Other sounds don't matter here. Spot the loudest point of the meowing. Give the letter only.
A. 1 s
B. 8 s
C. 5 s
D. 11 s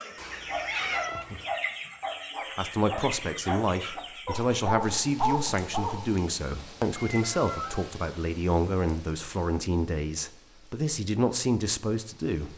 A.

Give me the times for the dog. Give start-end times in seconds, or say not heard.
0.5-6.2.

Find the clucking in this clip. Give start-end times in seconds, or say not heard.
0.0-4.7.